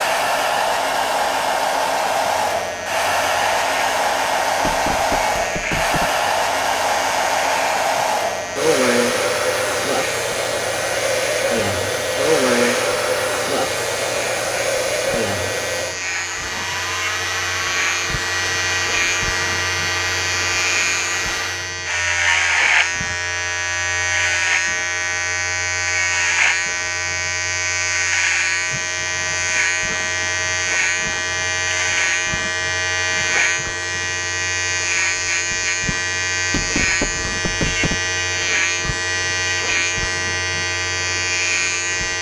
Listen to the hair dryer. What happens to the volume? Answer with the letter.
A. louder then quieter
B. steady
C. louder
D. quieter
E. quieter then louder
D.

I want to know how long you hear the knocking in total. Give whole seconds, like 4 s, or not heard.
3 s.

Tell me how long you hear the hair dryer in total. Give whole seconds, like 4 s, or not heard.
22 s.